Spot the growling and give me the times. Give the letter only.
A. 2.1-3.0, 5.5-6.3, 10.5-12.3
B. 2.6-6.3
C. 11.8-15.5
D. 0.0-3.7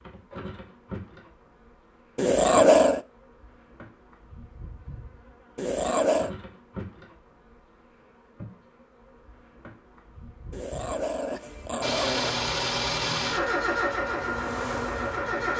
A.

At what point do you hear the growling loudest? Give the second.
3 s.